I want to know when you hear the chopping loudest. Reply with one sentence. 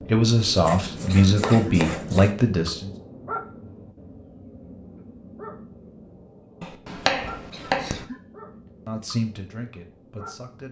The volume of the chopping peaks at 7 seconds.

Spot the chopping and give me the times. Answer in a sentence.
You can hear the chopping from 0.5 to 2.3 s and from 6.6 to 8.1 s.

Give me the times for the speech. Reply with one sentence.
You can hear the speech from 0.0 to 2.9 s and from 8.8 to 10.6 s.